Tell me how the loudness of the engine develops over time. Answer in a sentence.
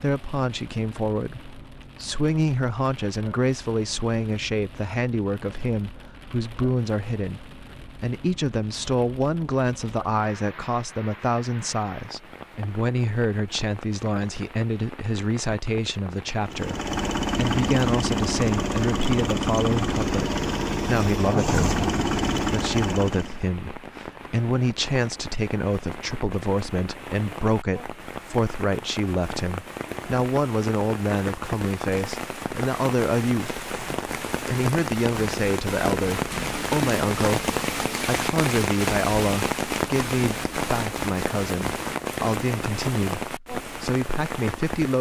The loudness of the engine stays about the same.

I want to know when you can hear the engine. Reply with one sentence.
You can hear the engine from 16.4 to 23.4 s.